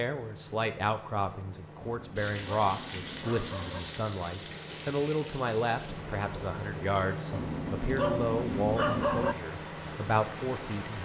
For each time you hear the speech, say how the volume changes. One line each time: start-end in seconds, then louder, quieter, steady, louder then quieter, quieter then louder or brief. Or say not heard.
0.0-11.0 steady.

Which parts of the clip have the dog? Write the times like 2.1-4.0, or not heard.
1.8-3.8, 7.3-9.3.